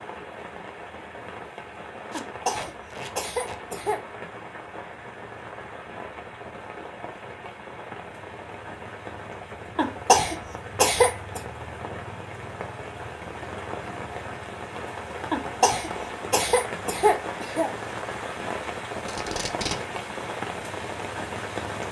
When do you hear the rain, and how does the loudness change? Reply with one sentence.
You can hear the rain from 0.0 to 21.8 s, getting louder.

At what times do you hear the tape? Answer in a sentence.
The tape can be heard from 2.1 to 3.6 s and from 19.1 to 19.8 s.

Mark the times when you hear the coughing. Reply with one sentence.
The coughing can be heard from 2.1 to 4.0 s, from 9.8 to 11.4 s and from 15.3 to 17.7 s.